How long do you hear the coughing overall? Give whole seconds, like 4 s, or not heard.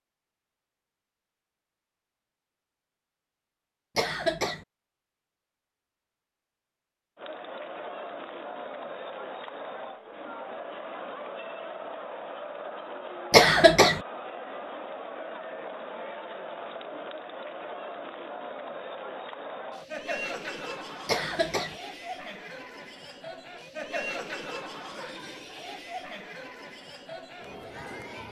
2 s.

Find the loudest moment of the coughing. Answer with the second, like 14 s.
14 s.